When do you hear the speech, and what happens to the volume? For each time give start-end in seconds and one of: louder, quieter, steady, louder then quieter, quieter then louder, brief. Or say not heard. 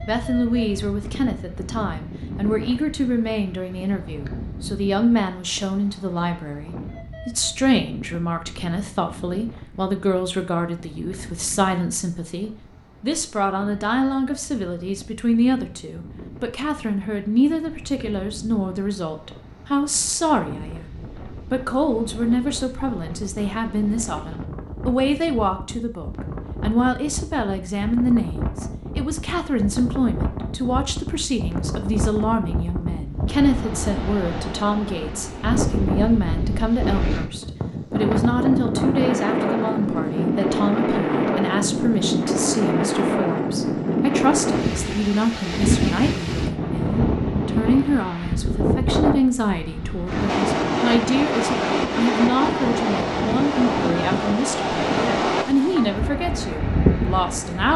0.1-57.7 steady.